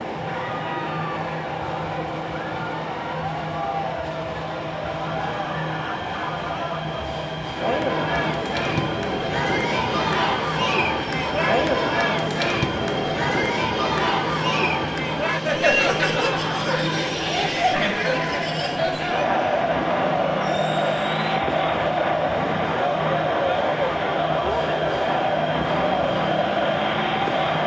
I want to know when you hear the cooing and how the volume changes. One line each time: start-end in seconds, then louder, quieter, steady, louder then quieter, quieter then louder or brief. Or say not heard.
not heard.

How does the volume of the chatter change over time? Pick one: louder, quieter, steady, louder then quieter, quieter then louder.
louder.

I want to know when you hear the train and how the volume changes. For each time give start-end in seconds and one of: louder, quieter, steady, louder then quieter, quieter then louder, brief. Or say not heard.
0.0-27.6 steady.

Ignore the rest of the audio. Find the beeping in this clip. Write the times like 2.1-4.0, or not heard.
not heard.